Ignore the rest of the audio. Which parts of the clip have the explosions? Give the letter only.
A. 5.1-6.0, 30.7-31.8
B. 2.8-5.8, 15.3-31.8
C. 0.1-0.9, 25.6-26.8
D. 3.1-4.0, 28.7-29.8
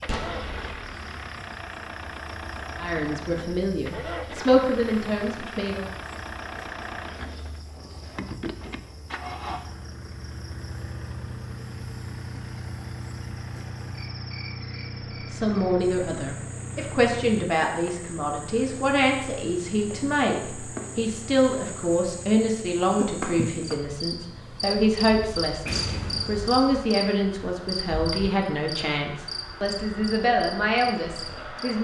C.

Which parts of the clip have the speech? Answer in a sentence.
You can hear the speech from 2.8 to 5.8 s and from 15.3 to 31.8 s.